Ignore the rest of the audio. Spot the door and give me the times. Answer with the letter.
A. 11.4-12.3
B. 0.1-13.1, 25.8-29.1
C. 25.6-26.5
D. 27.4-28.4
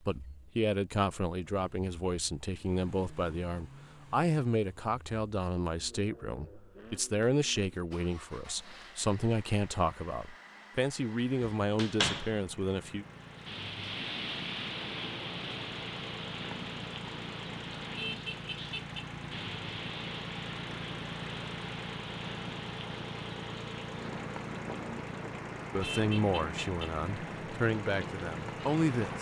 A.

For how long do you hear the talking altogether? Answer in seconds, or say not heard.
16 s.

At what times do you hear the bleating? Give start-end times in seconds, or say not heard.
not heard.